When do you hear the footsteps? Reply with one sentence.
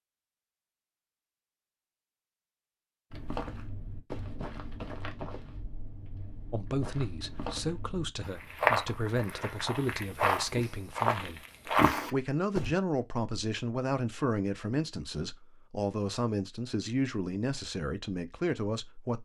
You can hear the footsteps from 3.1 to 12.8 s.